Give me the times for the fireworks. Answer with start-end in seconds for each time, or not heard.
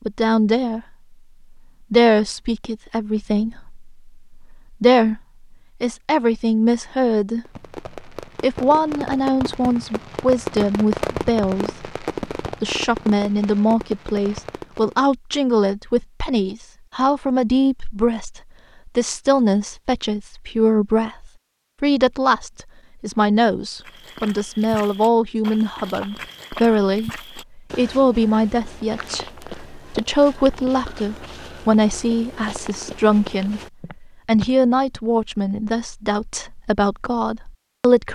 7.5-15.1.